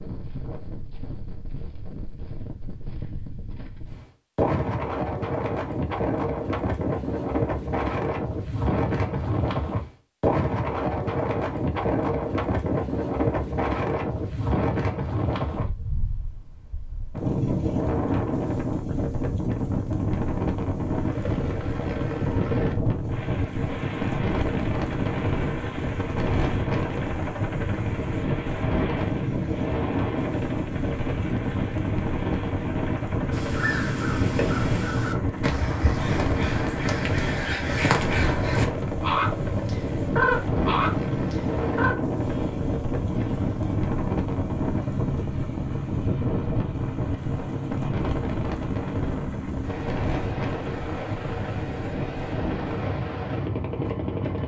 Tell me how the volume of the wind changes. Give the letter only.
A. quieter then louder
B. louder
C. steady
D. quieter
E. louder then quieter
C.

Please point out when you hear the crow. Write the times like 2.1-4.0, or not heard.
33.3-42.0.